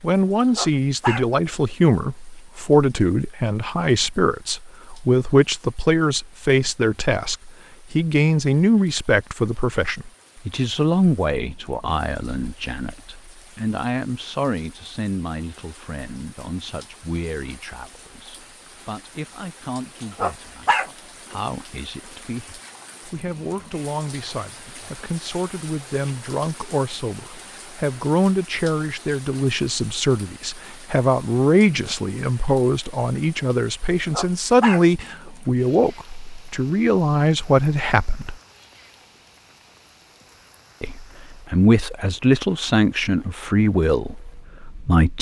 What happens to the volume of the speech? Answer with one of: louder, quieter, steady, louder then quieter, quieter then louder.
quieter then louder.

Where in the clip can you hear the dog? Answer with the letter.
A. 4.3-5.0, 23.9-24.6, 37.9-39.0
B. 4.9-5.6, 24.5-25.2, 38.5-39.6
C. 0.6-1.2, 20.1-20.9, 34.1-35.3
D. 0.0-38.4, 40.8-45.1
C.